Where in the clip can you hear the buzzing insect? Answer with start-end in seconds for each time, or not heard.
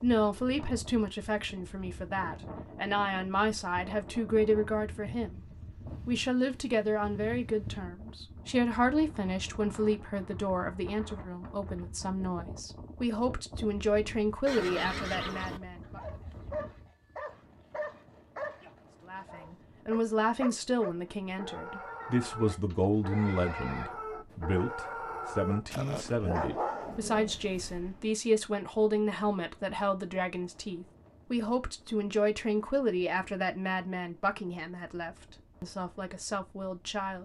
not heard.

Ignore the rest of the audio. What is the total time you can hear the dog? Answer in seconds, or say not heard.
12 s.